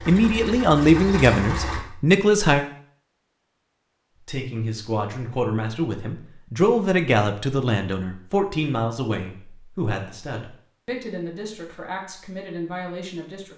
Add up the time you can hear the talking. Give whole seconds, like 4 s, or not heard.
12 s.